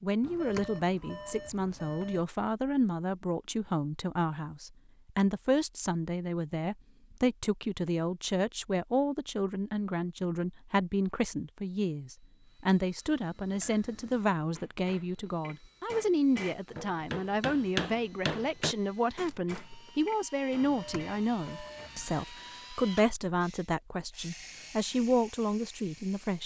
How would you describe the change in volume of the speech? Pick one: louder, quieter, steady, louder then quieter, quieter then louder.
steady.